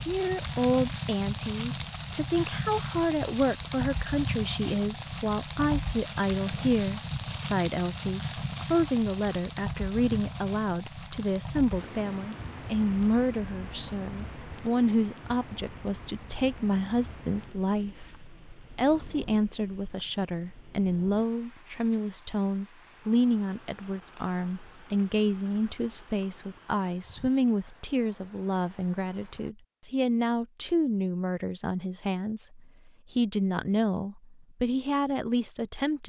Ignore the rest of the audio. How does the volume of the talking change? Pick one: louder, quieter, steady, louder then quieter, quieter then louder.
steady.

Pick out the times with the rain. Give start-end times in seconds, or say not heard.
0.0-29.6.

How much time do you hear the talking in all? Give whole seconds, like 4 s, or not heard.
36 s.